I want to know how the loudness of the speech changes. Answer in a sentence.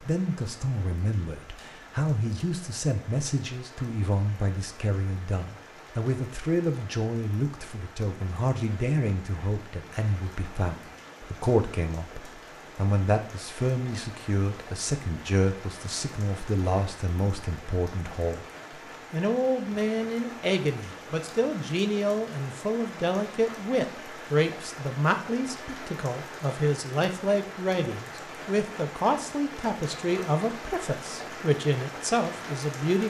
The volume of the speech stays about the same.